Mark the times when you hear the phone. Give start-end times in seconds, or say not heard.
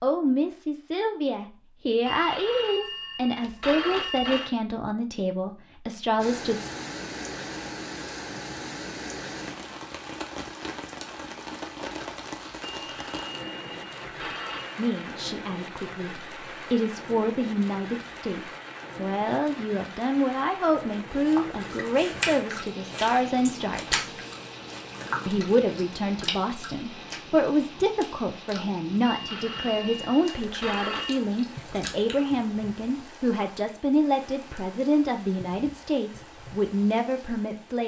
2.0-4.5, 12.7-14.8, 29.1-31.1.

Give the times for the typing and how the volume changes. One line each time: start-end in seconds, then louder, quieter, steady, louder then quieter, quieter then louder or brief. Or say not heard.
not heard.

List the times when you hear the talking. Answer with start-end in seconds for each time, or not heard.
0.0-6.7, 14.8-24.1, 25.2-37.8.